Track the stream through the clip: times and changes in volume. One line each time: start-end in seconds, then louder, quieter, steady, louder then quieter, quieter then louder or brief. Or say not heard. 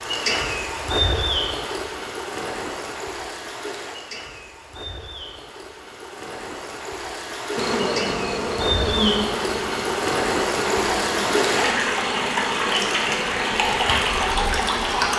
0.0-15.1 quieter then louder.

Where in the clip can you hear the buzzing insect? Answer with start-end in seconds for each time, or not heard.
7.5-15.1.